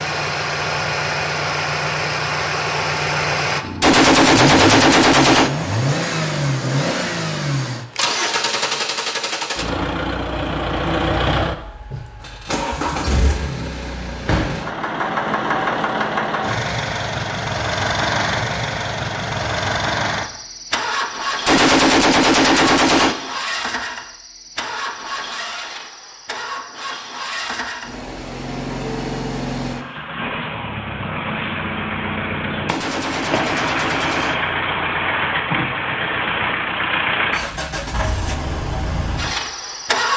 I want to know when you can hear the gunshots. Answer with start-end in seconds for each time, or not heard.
3.8-5.5, 21.4-23.1, 32.6-34.4.